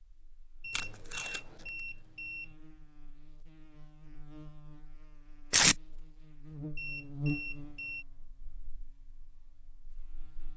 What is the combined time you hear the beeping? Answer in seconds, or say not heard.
3 s.